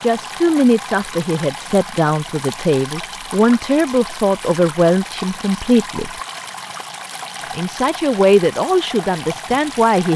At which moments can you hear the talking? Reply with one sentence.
The talking can be heard from 0.0 to 6.1 s and from 7.5 to 10.1 s.